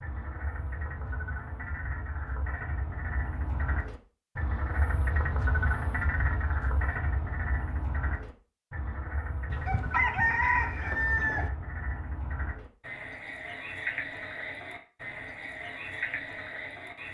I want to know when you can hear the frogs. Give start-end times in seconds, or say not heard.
0.0-17.0.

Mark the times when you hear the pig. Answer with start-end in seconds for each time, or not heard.
not heard.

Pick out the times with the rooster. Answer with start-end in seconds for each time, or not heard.
9.5-11.5.